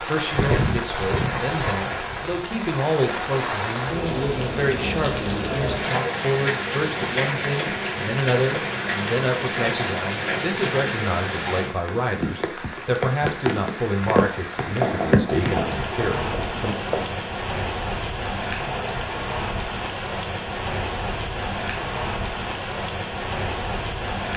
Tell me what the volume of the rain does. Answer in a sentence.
The loudness of the rain stays about the same.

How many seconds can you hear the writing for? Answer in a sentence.
The writing can be heard for 2 seconds in total.